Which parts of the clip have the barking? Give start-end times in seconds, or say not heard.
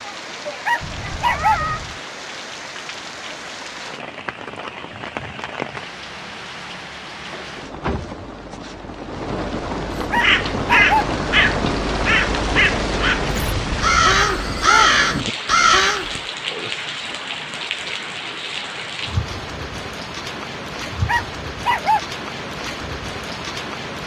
0.7-1.6, 10.1-11.1, 21.1-22.0.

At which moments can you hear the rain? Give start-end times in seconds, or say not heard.
0.0-24.0.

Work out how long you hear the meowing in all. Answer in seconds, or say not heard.
2 s.